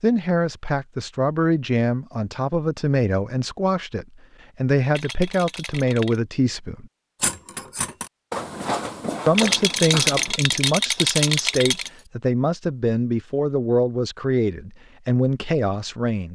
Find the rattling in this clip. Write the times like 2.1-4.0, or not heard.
4.9-6.2, 9.3-11.9.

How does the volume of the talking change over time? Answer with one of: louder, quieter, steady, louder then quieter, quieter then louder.
steady.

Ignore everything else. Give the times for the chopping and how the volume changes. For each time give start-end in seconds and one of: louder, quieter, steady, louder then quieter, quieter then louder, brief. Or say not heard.
not heard.